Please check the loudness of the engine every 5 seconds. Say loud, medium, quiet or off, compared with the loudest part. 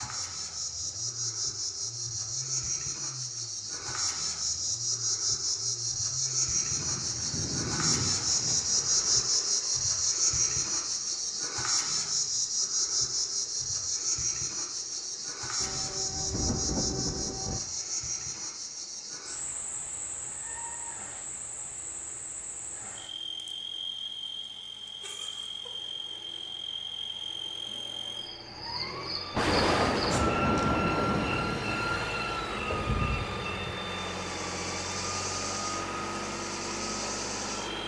quiet, quiet, quiet, quiet, quiet, quiet, loud, loud.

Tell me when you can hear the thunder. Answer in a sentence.
You can hear the thunder from 6.5 to 9.2 s, from 15.6 to 17.6 s and from 29.3 to 32.0 s.